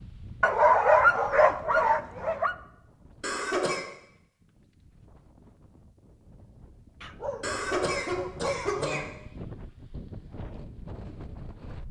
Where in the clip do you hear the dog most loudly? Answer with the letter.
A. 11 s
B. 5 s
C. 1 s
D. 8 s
C.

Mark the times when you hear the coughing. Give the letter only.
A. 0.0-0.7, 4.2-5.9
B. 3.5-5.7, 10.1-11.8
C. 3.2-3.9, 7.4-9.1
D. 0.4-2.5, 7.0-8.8
C.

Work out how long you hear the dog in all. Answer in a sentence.
You can hear the dog for 4 seconds altogether.